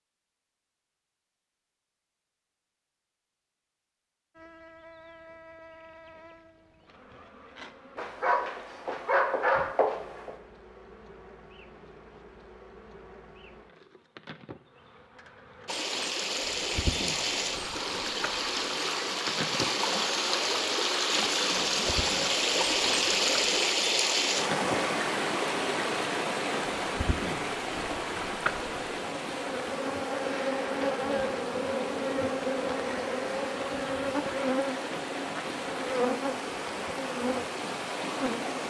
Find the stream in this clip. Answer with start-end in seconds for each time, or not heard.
15.7-38.6.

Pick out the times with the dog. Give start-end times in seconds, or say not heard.
8.0-10.3.